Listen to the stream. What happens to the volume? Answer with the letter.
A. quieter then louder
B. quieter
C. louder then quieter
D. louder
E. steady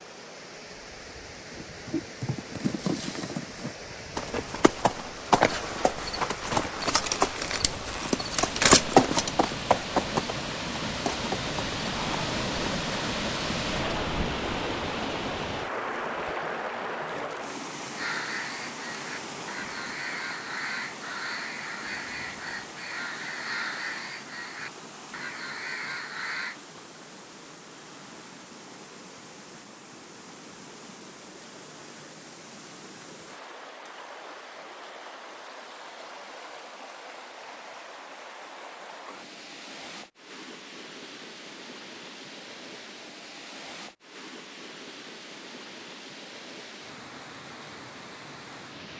C.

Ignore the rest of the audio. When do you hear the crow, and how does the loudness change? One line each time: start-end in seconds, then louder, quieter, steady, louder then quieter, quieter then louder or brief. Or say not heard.
17.9-26.6 steady.